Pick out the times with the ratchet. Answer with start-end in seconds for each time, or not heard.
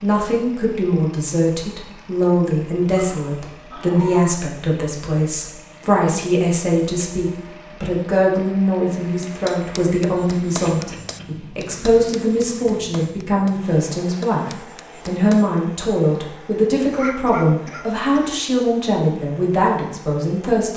not heard.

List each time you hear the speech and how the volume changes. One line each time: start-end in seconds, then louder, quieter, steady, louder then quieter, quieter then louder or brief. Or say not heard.
0.0-20.7 steady.